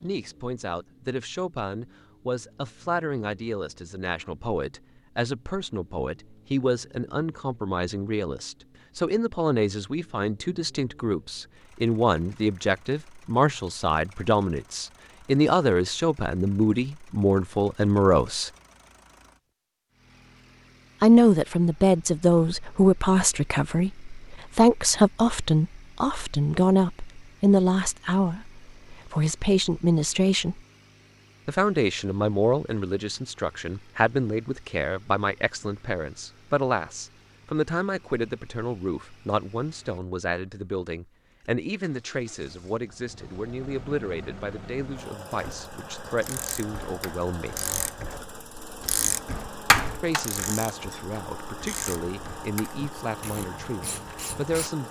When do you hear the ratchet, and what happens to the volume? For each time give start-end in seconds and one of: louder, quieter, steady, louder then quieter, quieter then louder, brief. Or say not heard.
45.3-54.7 louder then quieter.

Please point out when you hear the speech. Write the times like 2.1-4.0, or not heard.
0.0-18.5, 21.0-30.6, 31.4-47.6, 50.0-54.8.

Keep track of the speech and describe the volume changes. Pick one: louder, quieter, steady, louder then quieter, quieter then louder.
louder then quieter.